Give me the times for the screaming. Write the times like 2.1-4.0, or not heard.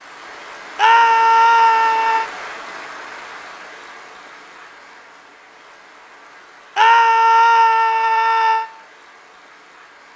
0.8-2.3, 6.8-8.7.